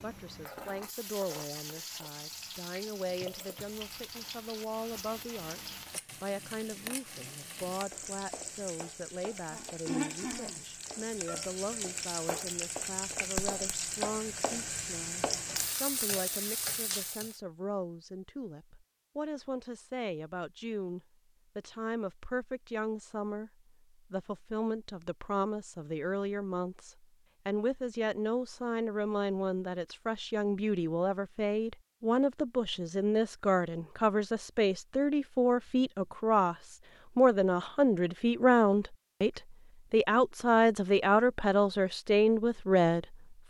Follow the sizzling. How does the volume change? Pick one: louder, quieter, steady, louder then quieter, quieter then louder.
louder.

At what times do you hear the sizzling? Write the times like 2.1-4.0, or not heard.
0.0-17.4.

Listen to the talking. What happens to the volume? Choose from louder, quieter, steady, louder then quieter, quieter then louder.
louder.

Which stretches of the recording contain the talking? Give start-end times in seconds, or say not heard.
0.0-23.5, 24.1-43.1.